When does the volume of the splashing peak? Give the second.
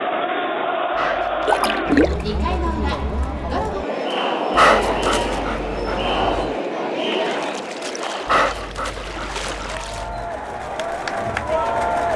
2 s.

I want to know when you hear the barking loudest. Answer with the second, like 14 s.
5 s.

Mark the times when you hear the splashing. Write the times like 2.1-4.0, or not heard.
1.4-2.4, 7.2-10.1.